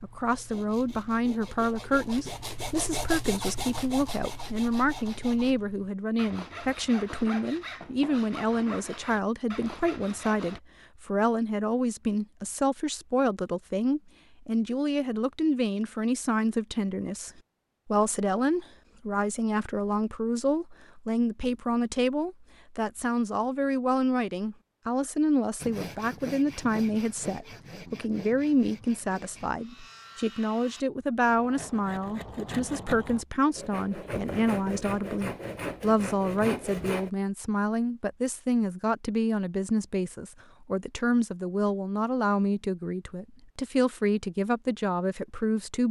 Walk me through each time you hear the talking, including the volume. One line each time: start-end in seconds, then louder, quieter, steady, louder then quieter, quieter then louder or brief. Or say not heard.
0.0-45.8 steady.